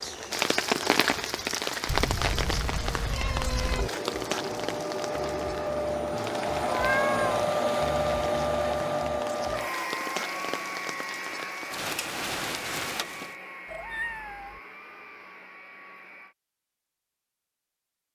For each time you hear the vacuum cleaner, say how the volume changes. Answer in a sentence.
You can hear the vacuum cleaner from 0.0 to 16.4 s, getting louder then quieter.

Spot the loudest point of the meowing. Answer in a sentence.
The loudest moment of the meowing is at 7 seconds.